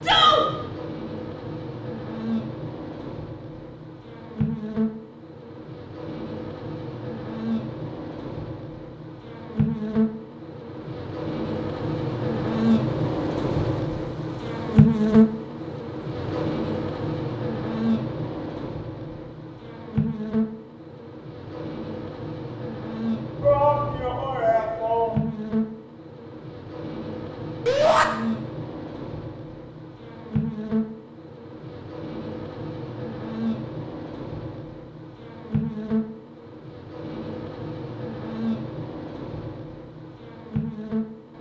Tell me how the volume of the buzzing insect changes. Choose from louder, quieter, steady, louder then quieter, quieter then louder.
louder then quieter.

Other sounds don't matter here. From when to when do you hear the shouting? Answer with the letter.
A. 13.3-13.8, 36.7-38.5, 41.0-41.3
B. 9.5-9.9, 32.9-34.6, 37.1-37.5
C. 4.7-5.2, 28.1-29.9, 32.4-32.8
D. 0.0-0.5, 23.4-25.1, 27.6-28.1
D.